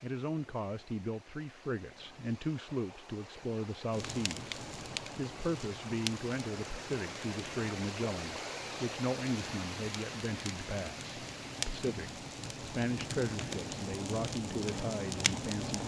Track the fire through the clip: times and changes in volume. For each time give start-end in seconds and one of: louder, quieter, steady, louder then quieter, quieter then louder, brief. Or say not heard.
3.9-15.8 quieter then louder.